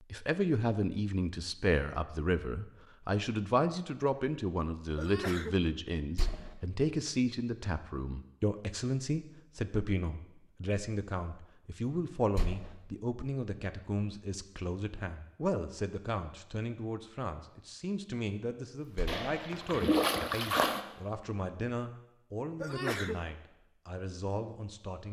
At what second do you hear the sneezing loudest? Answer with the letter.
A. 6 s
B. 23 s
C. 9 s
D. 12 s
B.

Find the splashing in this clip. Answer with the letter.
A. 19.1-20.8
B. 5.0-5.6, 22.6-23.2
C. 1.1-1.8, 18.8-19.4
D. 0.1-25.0
A.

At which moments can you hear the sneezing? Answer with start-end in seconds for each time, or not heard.
5.0-5.6, 22.6-23.2.